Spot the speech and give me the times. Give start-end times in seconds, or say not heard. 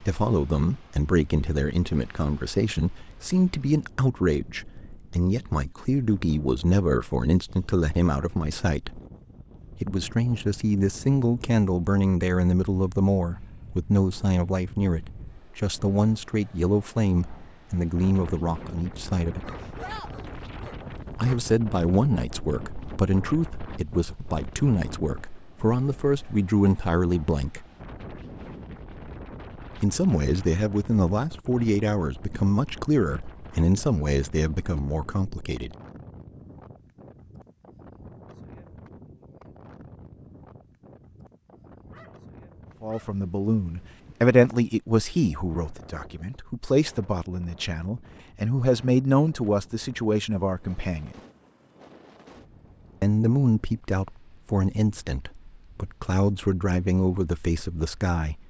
0.0-9.0, 9.8-19.5, 21.1-27.6, 29.8-35.8, 42.8-51.2, 53.0-58.4.